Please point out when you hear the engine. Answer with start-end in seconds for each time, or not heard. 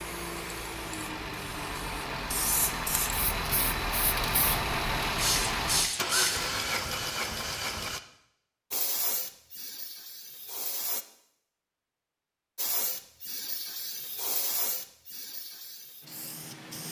0.0-8.0.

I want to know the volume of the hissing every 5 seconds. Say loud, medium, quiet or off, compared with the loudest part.
medium, loud, medium, quiet.